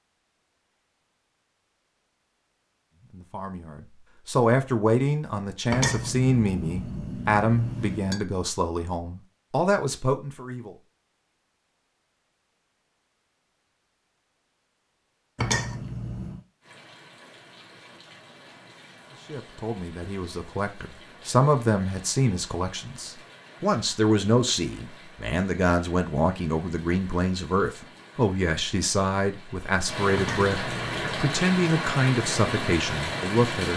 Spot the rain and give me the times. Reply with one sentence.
The rain can be heard from 16.6 to 33.7 s.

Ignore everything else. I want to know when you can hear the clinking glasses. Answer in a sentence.
The clinking glasses can be heard from 5.7 to 8.2 s, from 15.3 to 16.4 s and from 30.1 to 31.1 s.